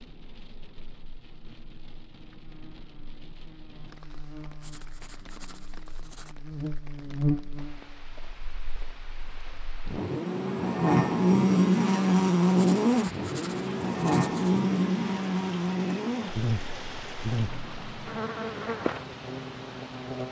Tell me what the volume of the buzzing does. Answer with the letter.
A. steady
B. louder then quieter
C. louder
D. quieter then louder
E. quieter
B.